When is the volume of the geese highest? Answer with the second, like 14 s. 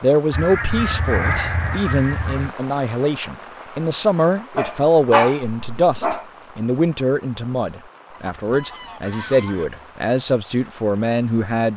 1 s.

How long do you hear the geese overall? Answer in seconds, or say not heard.
4 s.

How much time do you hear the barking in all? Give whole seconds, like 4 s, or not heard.
2 s.